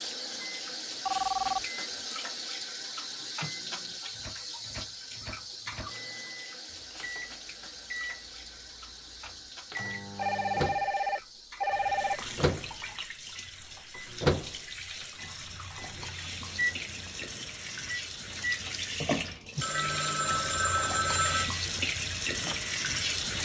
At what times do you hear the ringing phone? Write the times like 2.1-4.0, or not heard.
1.1-1.6, 10.2-12.2, 19.6-21.5.